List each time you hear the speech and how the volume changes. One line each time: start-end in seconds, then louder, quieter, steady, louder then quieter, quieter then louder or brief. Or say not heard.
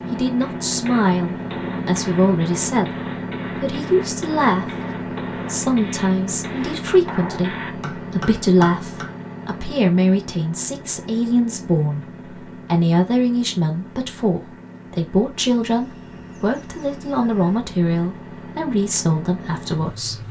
0.1-20.2 steady.